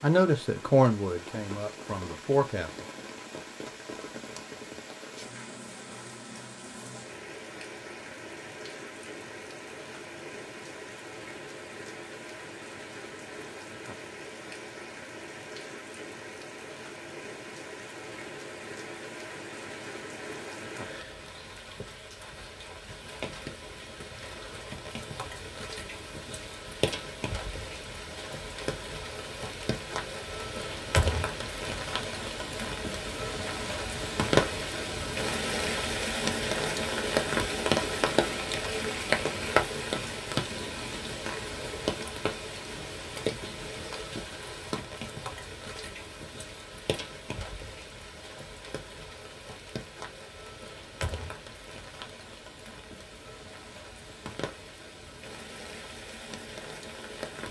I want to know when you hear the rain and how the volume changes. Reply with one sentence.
You can hear the rain from 0.0 to 57.4 s, getting louder then quieter.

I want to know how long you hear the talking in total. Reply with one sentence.
The talking can be heard for 3 seconds in total.